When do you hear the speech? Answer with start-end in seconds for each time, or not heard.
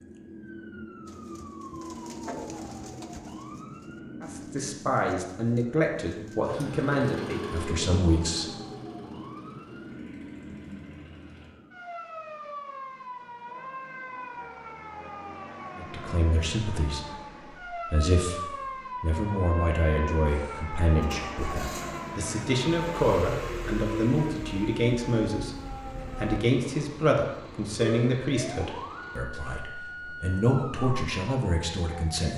4.2-8.6, 15.8-32.3.